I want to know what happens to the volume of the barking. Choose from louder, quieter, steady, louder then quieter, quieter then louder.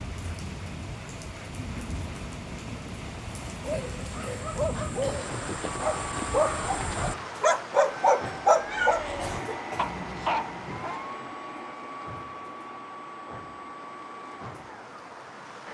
louder then quieter.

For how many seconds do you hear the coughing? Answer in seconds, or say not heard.
3 s.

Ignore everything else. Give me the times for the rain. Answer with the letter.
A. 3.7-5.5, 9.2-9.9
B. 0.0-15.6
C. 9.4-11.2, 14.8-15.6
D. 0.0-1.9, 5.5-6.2
B.